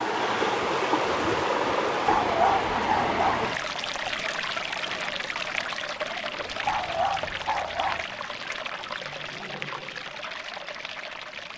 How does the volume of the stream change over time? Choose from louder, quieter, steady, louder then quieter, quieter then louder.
quieter.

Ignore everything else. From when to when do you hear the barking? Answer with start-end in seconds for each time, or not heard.
2.0-3.5, 6.7-8.1.